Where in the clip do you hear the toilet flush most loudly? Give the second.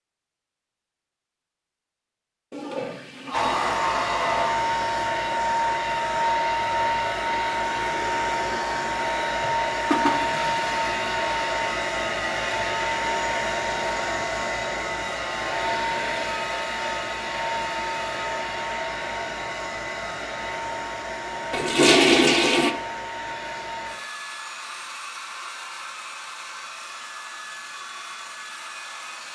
22 s.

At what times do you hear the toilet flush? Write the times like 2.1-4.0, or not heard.
2.5-4.5, 9.9-11.1, 21.5-22.7.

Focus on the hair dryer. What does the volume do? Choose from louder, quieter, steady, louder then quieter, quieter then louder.
quieter.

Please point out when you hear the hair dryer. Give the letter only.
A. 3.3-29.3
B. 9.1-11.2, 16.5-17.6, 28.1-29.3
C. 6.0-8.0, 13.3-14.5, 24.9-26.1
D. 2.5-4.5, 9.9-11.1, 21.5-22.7
A.